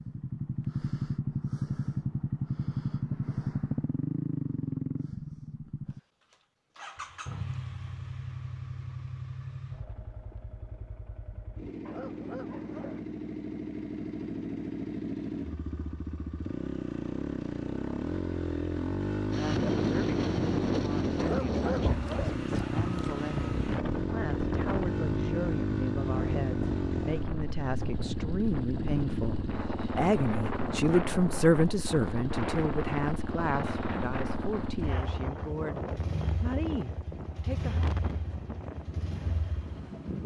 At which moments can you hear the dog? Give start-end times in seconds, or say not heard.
11.8-13.1, 21.1-22.4.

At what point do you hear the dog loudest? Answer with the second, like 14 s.
22 s.